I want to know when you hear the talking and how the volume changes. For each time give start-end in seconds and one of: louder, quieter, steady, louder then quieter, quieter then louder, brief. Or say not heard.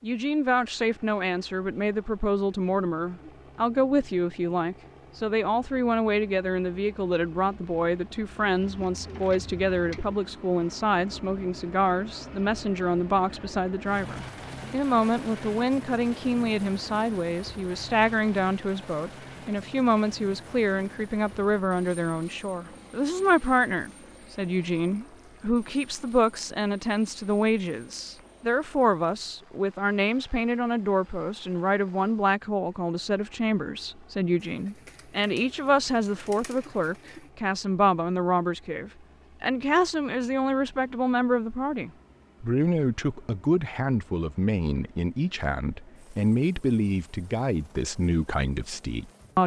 0.0-49.4 steady.